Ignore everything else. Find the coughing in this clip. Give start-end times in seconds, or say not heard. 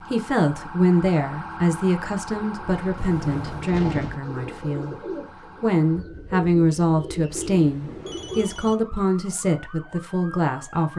not heard.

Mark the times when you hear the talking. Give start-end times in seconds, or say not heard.
0.0-10.9.